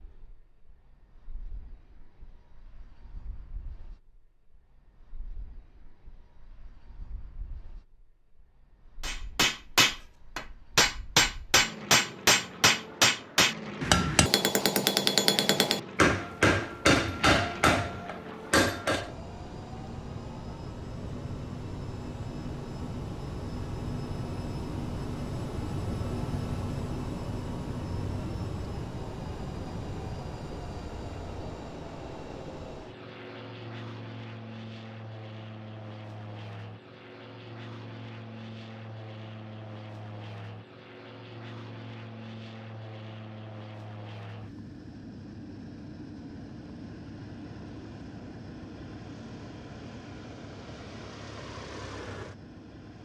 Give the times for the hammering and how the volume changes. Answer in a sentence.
The hammering can be heard from 9.0 to 19.1 s, at a steady volume.